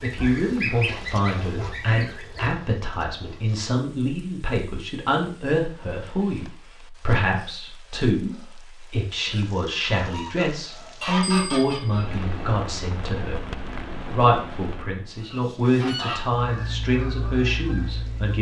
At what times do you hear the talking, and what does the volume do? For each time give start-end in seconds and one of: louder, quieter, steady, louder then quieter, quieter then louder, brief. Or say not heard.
0.0-18.3 steady.